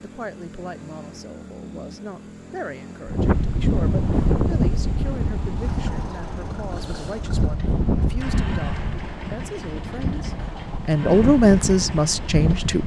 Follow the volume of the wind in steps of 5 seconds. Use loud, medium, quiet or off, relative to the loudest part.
loud, medium, medium.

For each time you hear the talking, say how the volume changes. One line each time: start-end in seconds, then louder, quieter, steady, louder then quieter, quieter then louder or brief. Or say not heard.
0.0-12.8 louder.